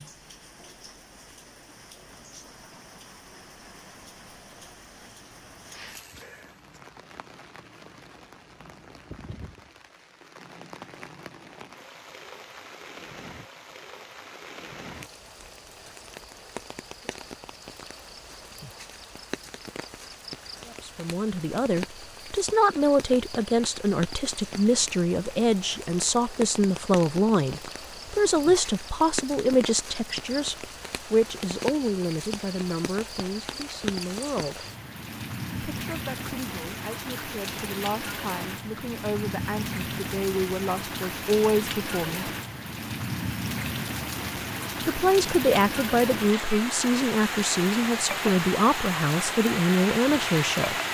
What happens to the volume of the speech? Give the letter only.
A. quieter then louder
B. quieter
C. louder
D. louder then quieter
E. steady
A.